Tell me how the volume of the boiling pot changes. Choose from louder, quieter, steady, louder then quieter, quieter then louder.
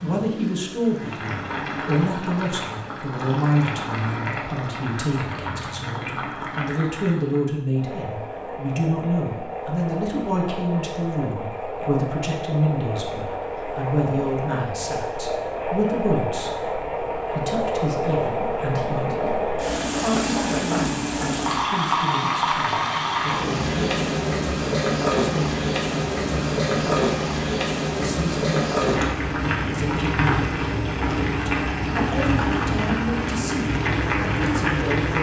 louder.